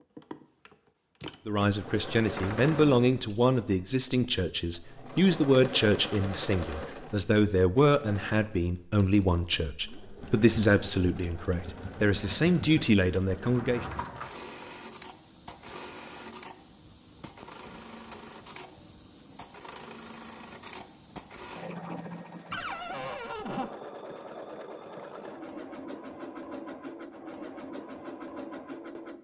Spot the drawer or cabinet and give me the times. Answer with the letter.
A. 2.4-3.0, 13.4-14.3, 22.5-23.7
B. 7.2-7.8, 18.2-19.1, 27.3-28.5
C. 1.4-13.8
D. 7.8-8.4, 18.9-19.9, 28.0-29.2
A.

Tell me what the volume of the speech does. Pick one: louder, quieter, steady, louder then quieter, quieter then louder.
steady.